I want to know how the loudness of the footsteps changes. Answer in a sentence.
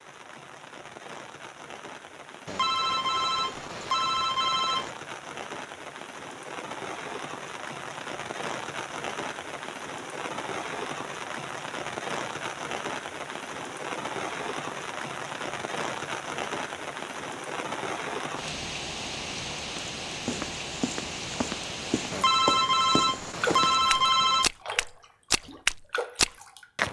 The loudness of the footsteps goes up.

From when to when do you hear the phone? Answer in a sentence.
You can hear the phone from 2.5 to 4.9 s and from 22.1 to 24.5 s.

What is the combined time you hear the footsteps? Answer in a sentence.
The footsteps can be heard for 7 seconds in total.